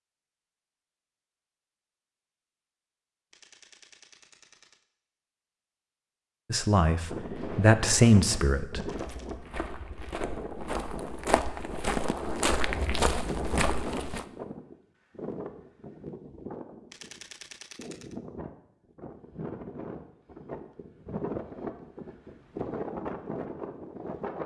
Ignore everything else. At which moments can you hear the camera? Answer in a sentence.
The camera can be heard from 3.3 to 4.8 s, from 8.8 to 9.3 s and from 16.9 to 18.1 s.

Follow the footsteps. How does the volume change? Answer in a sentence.
The loudness of the footsteps goes up.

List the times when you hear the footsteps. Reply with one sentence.
The footsteps can be heard from 7.3 to 14.2 s.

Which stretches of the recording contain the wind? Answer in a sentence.
You can hear the wind from 7.0 to 24.4 s.